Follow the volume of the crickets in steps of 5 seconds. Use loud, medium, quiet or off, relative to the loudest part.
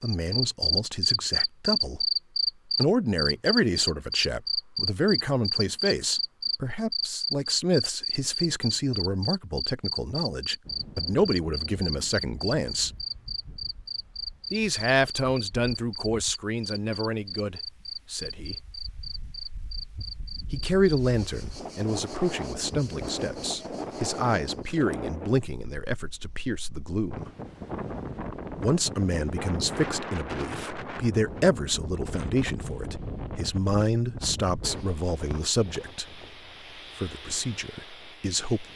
loud, medium, medium, quiet, quiet, off, off, off.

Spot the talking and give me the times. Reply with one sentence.
The talking can be heard from 0.0 to 2.1 s, from 2.8 to 12.9 s, from 14.5 to 18.6 s, from 20.5 to 27.3 s, from 28.6 to 36.2 s and from 37.0 to 38.6 s.